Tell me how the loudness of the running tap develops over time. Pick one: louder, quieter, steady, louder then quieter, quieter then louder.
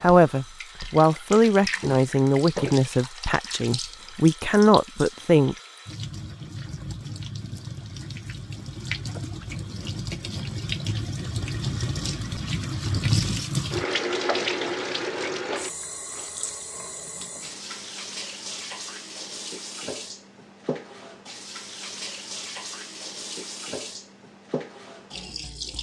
louder then quieter.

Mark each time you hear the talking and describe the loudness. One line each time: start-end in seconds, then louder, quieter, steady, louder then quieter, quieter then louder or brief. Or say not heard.
0.0-5.5 quieter then louder.